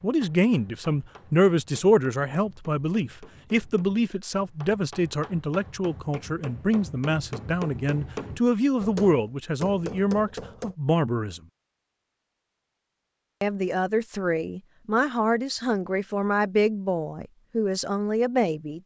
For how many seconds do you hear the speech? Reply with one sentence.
The speech can be heard for 17 seconds in total.